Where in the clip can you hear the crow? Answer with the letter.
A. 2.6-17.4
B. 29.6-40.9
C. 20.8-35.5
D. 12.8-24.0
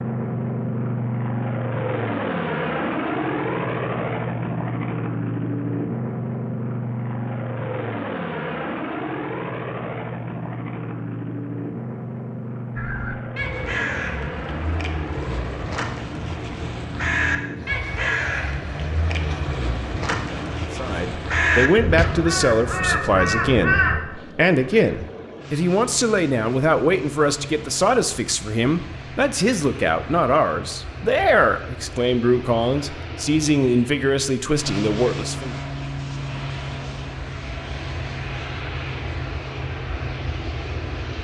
D.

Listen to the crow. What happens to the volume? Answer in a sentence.
The loudness of the crow goes up.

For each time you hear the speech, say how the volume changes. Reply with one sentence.
You can hear the speech from 20.8 to 35.5 s, at a steady volume.